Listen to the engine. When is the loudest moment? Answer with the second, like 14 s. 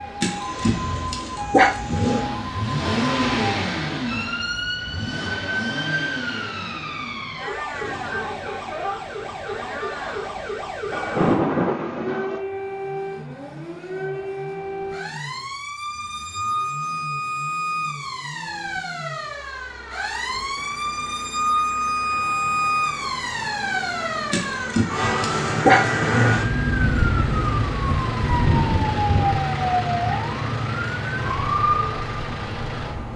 3 s.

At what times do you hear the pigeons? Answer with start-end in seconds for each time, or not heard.
not heard.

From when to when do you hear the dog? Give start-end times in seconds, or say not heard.
0.2-2.2, 24.3-26.3.